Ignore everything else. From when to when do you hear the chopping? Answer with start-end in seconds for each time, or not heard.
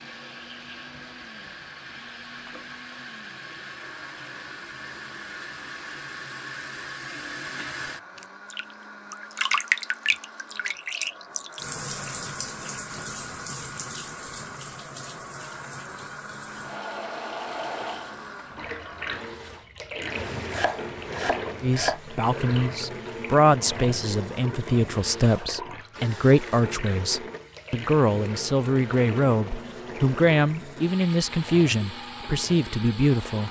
20.1-22.0.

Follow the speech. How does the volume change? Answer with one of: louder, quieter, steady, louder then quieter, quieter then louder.
steady.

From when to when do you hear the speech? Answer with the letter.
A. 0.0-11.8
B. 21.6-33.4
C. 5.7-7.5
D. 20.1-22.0
B.